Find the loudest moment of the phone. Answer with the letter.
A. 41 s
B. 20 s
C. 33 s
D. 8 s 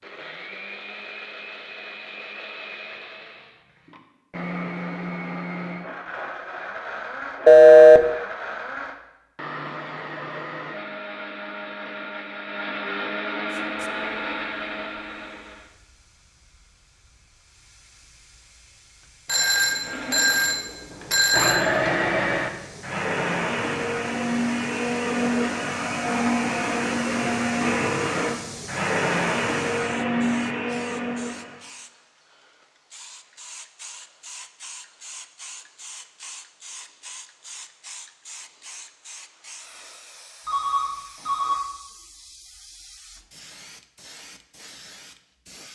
D.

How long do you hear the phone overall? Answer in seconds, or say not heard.
4 s.